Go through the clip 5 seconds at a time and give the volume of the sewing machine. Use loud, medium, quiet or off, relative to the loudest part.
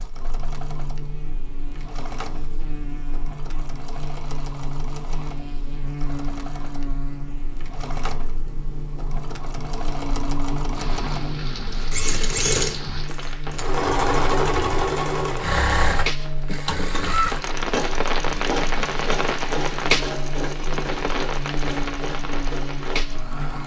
quiet, quiet, loud, loud, medium.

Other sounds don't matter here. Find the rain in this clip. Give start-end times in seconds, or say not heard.
10.8-23.6.